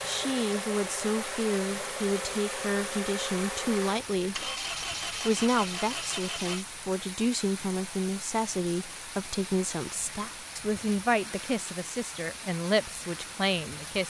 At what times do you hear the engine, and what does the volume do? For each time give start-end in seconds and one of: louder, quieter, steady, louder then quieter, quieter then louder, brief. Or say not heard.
0.0-6.7 steady.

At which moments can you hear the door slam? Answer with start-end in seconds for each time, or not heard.
not heard.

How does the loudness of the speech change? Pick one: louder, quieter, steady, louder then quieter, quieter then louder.
steady.